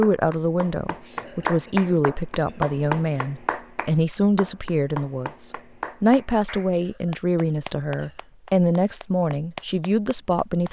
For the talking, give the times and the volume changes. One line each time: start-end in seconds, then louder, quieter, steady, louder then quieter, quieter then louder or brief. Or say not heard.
0.0-10.6 steady.